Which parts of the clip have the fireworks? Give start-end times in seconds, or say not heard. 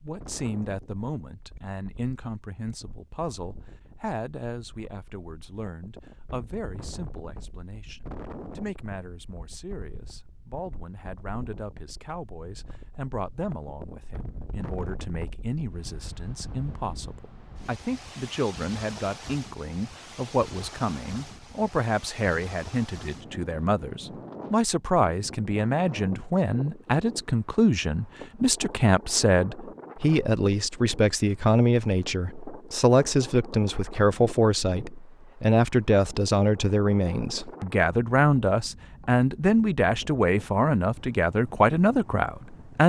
not heard.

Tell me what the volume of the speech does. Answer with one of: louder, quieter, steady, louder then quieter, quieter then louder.
louder.